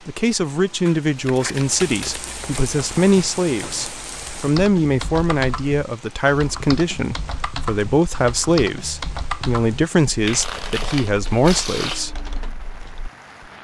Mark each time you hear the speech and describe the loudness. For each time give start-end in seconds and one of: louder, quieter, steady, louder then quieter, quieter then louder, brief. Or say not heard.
0.1-12.2 steady.